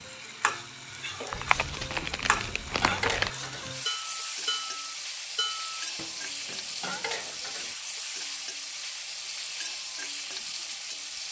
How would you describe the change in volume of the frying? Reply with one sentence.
The volume of the frying stays about the same.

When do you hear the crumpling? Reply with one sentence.
The crumpling can be heard from 1.3 to 3.3 s.